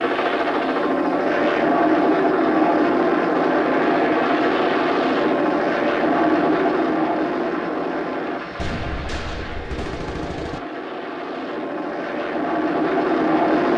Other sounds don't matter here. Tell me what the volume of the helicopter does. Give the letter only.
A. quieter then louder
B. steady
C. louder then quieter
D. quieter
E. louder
A.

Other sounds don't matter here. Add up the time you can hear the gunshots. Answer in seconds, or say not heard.
2 s.